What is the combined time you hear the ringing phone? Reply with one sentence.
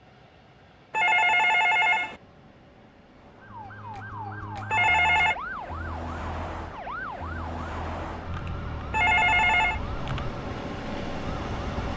The ringing phone can be heard for 3 seconds in total.